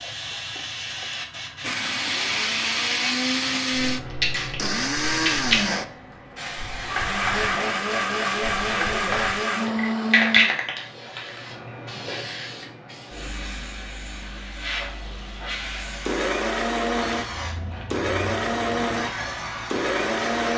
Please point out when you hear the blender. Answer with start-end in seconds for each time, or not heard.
0.0-10.6, 16.1-20.5.